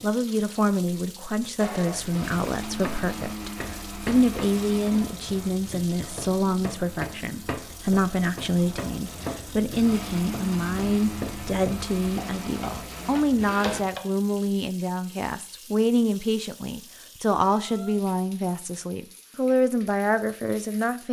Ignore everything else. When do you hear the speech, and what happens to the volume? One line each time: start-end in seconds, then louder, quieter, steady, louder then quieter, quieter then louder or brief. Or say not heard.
0.0-21.0 steady.